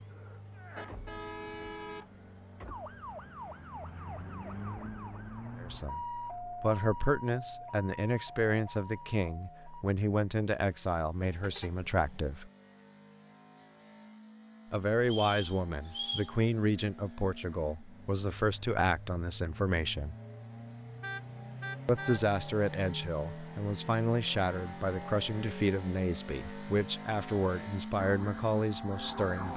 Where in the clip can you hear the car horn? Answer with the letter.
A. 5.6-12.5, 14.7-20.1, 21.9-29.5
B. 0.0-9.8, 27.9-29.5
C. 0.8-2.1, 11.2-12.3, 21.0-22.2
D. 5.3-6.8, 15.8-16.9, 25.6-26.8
C.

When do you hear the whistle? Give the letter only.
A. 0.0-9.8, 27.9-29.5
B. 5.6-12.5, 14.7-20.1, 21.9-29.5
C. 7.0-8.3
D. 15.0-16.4
D.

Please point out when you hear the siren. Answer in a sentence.
You can hear the siren from 0.0 to 9.8 s and from 27.9 to 29.5 s.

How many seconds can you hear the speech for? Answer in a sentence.
The speech can be heard for 20 seconds in total.